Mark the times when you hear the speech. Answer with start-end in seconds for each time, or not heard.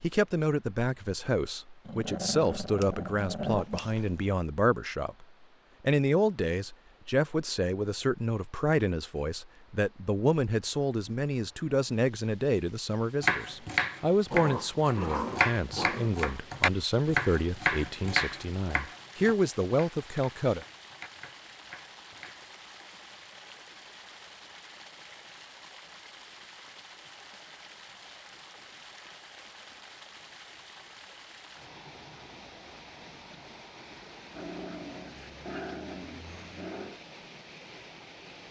0.0-20.6.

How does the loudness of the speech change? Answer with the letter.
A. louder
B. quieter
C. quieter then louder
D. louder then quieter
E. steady
E.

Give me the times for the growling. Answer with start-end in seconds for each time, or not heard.
1.9-4.3, 14.3-16.1, 34.3-37.0.